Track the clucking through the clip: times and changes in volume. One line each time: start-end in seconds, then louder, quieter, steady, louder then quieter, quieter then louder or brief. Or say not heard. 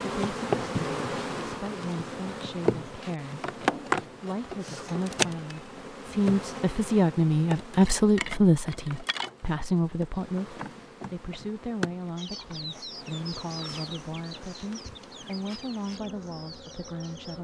12.2-17.3 quieter.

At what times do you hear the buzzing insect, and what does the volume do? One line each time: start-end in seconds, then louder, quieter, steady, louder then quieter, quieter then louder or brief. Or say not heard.
0.0-17.3 quieter.